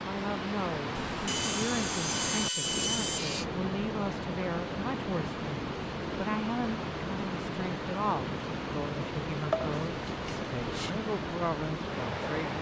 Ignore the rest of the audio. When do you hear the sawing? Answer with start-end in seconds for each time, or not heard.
0.9-3.5, 9.5-10.9.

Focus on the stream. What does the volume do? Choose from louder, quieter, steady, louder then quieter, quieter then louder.
steady.